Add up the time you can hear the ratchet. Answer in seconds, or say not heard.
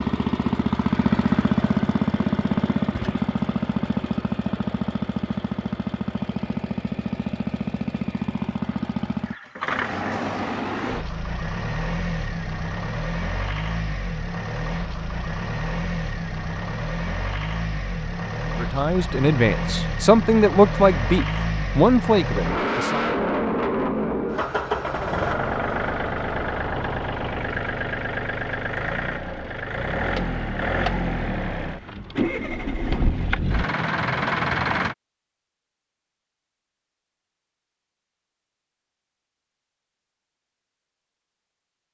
not heard.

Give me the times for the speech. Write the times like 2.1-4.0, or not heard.
18.6-23.1.